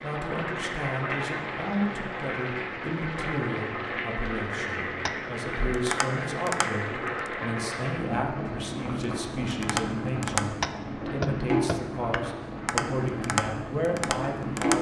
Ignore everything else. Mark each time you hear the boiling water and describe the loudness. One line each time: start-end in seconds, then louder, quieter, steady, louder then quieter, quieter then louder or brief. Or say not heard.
0.0-14.7 steady.